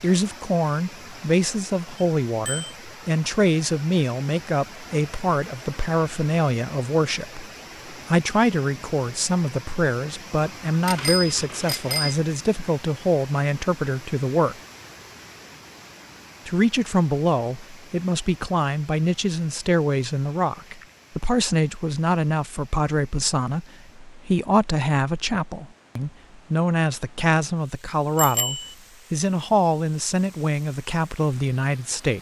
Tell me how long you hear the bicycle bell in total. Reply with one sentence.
The bicycle bell can be heard for 3 seconds in total.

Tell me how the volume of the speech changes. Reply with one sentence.
The volume of the speech stays about the same.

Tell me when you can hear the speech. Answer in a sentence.
The speech can be heard from 0.0 to 14.6 s and from 16.4 to 32.1 s.